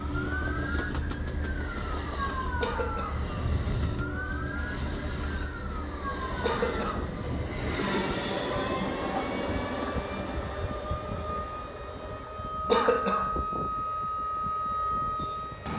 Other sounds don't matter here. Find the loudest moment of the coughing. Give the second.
13 s.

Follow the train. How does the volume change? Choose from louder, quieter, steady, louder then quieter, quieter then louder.
louder then quieter.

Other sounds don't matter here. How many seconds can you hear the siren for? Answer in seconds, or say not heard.
16 s.